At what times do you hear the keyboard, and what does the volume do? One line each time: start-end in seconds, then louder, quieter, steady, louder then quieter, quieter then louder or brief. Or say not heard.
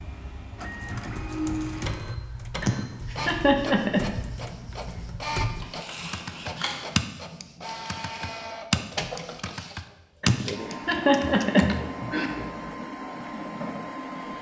0.8-11.9 louder.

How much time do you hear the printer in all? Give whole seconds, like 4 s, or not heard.
14 s.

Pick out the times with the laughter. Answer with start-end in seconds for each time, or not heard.
2.6-4.0, 10.2-12.3.